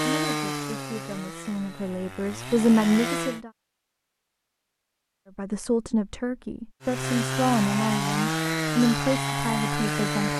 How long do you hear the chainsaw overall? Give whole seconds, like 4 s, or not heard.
7 s.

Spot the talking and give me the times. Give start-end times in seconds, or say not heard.
0.0-3.5, 5.3-10.3.